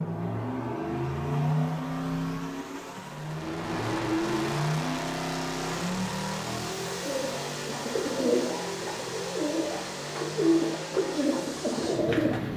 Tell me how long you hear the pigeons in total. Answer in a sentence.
The pigeons can be heard for 6 seconds in total.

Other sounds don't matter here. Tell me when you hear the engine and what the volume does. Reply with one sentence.
You can hear the engine from 0.0 to 12.5 s, getting quieter.